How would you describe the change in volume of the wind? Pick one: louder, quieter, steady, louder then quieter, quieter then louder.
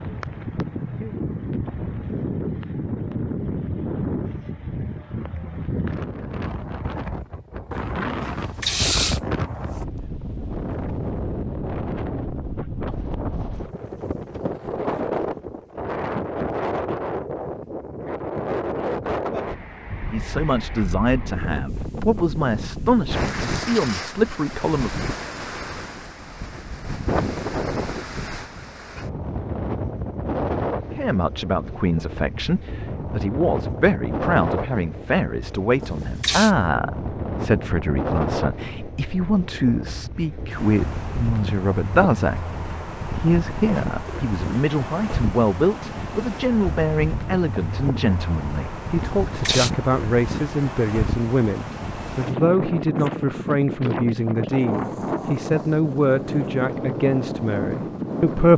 steady.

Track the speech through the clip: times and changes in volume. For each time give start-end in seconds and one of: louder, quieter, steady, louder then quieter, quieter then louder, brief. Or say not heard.
20.0-24.9 quieter then louder
30.9-58.5 steady.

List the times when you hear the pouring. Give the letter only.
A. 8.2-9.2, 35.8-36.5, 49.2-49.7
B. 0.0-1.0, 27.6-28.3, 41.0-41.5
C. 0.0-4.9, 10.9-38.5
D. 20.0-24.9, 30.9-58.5
A.